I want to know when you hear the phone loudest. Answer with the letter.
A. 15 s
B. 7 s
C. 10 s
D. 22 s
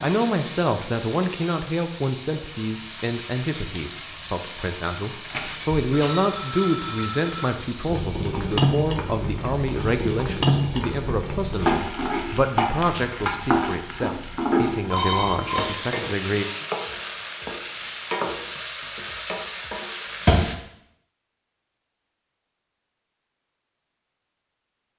A.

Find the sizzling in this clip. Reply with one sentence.
The sizzling can be heard from 0.0 to 20.6 s.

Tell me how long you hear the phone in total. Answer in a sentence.
The phone can be heard for 2 seconds in total.